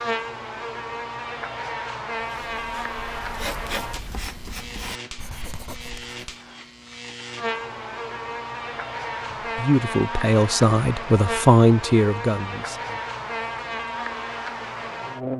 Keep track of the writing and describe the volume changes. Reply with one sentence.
The loudness of the writing goes up, then down.